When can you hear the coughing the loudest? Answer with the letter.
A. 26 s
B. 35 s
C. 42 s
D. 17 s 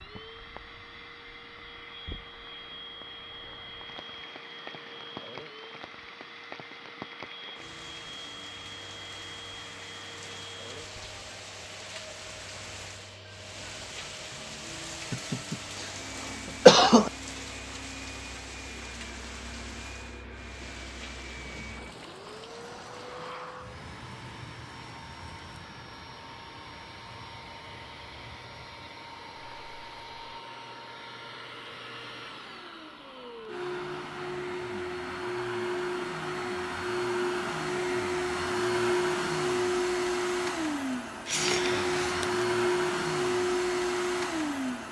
D.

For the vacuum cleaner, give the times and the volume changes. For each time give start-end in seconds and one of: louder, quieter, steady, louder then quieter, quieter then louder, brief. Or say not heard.
0.0-44.8 louder.